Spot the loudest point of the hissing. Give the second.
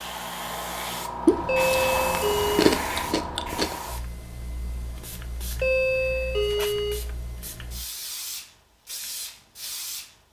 2 s.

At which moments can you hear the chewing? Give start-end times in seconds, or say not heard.
1.2-3.8.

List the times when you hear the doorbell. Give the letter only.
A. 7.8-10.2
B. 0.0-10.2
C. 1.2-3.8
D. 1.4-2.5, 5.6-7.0
D.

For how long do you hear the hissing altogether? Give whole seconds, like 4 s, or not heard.
10 s.